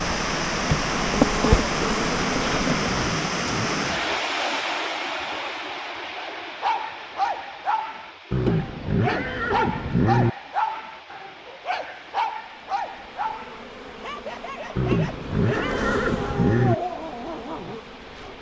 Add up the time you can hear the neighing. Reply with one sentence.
You can hear the neighing for 5 seconds altogether.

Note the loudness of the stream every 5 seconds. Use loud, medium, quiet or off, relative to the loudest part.
loud, medium, quiet, quiet.